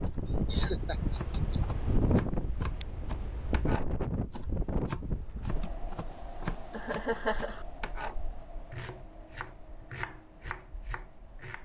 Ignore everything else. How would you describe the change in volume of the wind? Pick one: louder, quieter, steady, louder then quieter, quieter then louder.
quieter.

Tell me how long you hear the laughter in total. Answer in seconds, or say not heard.
2 s.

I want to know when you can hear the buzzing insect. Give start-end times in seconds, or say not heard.
not heard.